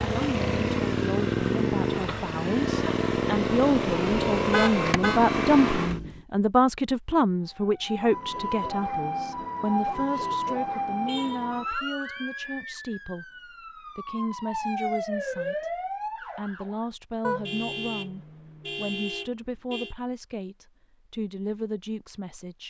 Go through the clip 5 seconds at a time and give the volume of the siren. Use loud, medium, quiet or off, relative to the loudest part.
off, loud, loud, loud, off.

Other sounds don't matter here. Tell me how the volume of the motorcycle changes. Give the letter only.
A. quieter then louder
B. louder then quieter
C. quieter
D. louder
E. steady
E.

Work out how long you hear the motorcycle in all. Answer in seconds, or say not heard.
6 s.